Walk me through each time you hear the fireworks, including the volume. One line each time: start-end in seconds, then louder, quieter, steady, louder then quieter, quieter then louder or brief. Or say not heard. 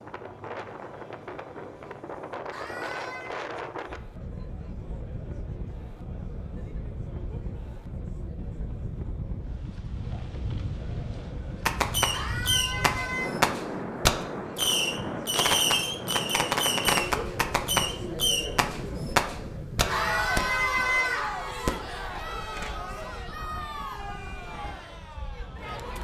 11.7-20.7 steady
21.6-22.8 brief.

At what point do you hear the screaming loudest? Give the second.
21 s.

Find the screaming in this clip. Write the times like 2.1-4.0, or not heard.
2.5-3.3, 12.1-13.3, 19.9-21.4.